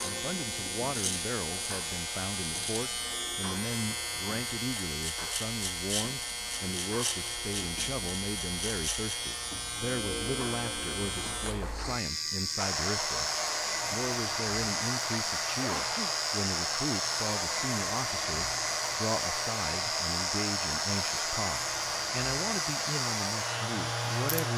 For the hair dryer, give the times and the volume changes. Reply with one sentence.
The hair dryer can be heard from 12.6 to 24.5 s, at a steady volume.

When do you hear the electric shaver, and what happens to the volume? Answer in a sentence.
You can hear the electric shaver from 0.0 to 24.5 s, at a steady volume.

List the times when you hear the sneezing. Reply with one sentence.
The sneezing can be heard from 15.6 to 16.1 s.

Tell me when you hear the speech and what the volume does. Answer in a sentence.
You can hear the speech from 0.0 to 24.5 s, at a steady volume.